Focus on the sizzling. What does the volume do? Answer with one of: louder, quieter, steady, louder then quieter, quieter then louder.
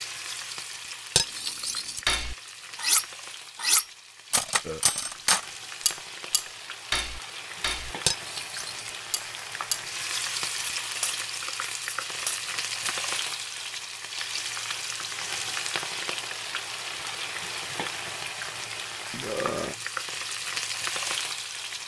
louder.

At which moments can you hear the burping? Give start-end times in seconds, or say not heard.
4.6-5.1, 19.1-19.8.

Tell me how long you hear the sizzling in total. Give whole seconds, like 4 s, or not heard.
22 s.